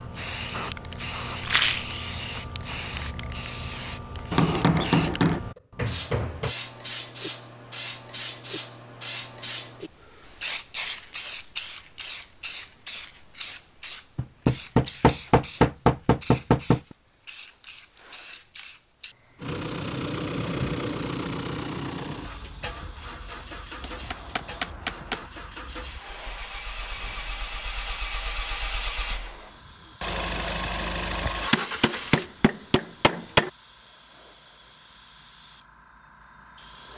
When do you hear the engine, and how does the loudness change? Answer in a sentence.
You can hear the engine from 19.4 to 32.3 s, getting quieter then louder.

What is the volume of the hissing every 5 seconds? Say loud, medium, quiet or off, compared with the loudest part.
loud, loud, loud, medium, quiet, quiet, quiet, quiet.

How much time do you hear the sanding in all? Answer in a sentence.
The sanding can't be heard in this clip.